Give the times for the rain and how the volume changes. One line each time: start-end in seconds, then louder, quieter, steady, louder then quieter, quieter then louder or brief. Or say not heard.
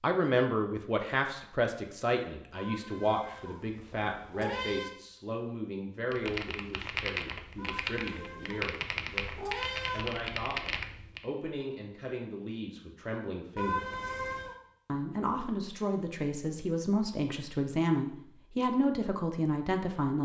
not heard.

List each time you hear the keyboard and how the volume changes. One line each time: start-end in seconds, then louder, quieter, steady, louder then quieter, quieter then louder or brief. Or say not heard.
6.1-11.2 steady.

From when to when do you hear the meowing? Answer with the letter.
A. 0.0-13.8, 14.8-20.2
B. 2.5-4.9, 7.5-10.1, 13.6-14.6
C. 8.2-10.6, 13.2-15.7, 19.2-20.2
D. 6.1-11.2
B.